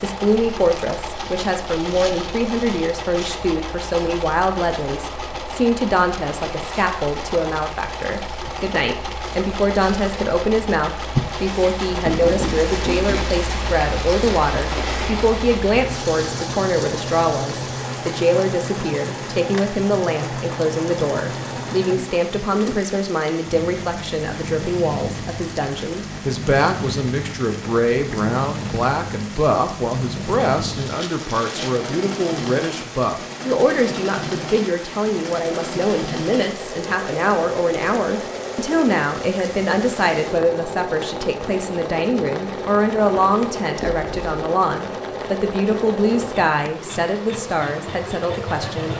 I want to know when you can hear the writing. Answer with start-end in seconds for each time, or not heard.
12.1-13.3, 43.8-44.5.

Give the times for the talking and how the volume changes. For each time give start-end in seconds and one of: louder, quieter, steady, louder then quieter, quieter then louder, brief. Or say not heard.
0.0-48.9 steady.